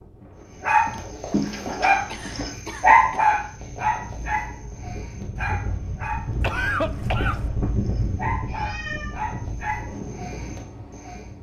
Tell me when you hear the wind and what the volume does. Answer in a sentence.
You can hear the wind from 0.0 to 11.3 s, getting louder then quieter.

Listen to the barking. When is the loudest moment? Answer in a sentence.
The volume of the barking peaks at 3 seconds.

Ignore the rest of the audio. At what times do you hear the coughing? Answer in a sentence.
The coughing can be heard from 0.8 to 3.4 s and from 6.4 to 7.5 s.